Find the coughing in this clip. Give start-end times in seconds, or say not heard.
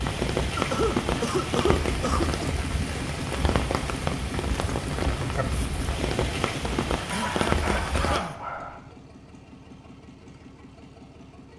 0.6-2.5, 7.1-8.4.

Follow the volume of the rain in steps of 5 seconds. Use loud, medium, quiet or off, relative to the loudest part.
loud, loud, off.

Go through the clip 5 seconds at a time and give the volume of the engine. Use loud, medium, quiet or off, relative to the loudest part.
loud, loud, quiet.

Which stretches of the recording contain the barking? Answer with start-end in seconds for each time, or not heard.
7.1-8.8.